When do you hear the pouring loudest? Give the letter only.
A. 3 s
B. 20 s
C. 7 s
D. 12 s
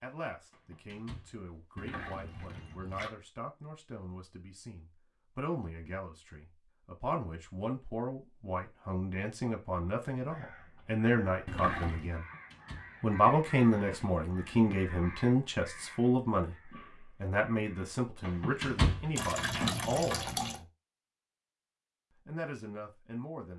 B.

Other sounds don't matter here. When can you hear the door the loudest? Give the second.
19 s.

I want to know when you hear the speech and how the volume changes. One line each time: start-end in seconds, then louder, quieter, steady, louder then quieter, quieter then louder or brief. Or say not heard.
0.0-12.2 louder
13.0-20.6 quieter
22.2-23.5 brief.